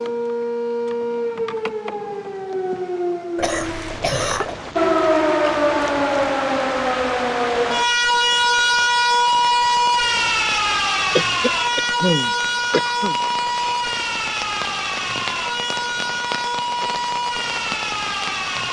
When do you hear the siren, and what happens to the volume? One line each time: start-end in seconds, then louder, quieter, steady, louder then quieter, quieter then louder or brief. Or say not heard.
0.0-18.6 louder then quieter.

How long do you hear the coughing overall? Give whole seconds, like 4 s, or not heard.
3 s.